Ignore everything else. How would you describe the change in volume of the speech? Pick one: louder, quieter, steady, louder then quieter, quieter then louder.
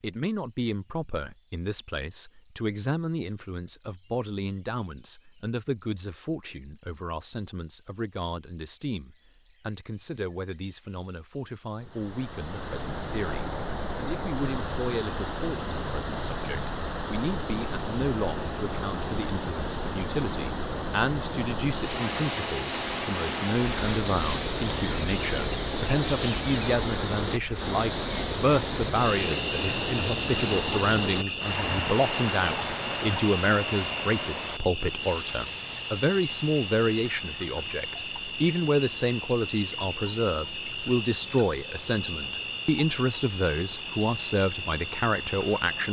louder.